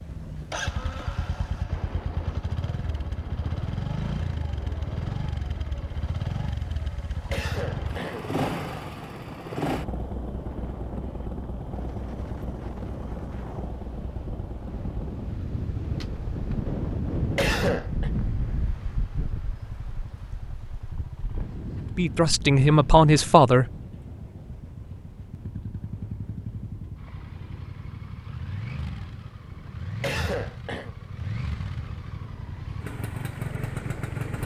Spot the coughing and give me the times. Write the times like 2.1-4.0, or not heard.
7.3-8.3, 17.4-18.1, 30.0-30.9.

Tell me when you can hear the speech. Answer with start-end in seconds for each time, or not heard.
21.9-23.6.